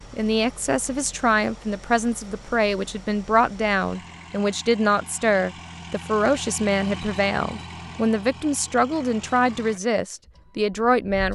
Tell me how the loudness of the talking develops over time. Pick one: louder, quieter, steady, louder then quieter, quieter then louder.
steady.